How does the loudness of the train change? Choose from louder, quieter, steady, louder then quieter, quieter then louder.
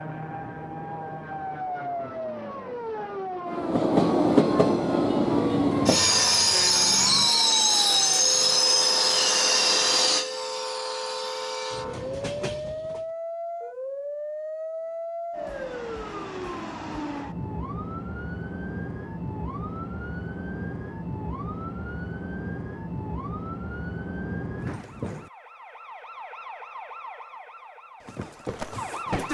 quieter.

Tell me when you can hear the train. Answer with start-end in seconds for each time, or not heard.
3.5-13.1.